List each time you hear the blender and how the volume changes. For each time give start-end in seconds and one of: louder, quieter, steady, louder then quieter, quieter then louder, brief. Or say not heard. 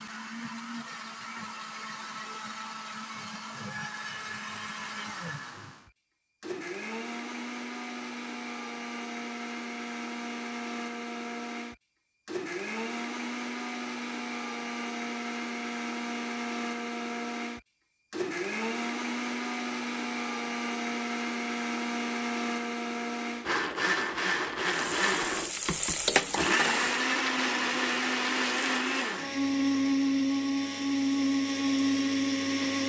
0.0-32.8 louder.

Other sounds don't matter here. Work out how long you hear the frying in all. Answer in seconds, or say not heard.
2 s.